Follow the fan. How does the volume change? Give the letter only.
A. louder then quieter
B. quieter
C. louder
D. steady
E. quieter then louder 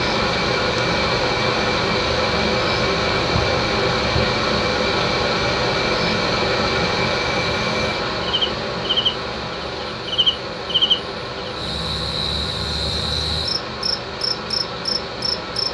B.